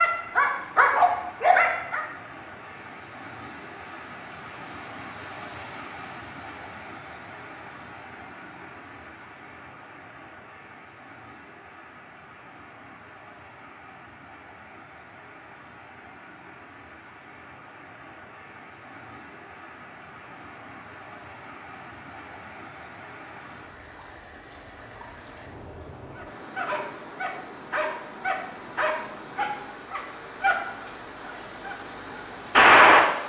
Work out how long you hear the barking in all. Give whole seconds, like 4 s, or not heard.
8 s.